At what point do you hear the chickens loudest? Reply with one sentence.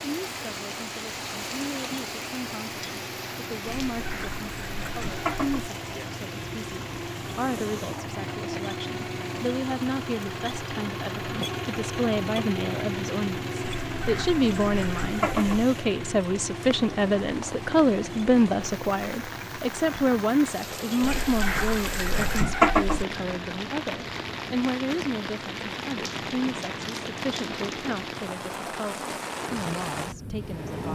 The loudest moment of the chickens is at 23 seconds.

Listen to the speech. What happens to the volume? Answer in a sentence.
The volume of the speech goes up, then down.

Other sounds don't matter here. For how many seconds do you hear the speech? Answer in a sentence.
You can hear the speech for 31 seconds altogether.